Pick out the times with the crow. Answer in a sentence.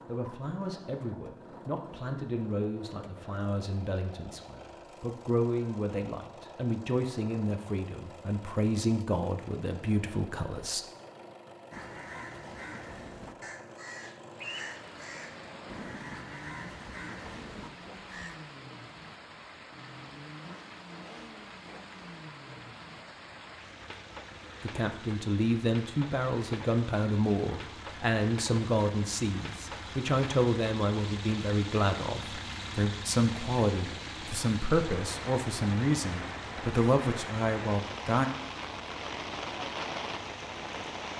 The crow can be heard from 11.7 to 18.4 s.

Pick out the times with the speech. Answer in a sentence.
You can hear the speech from 0.1 to 10.8 s and from 24.6 to 38.3 s.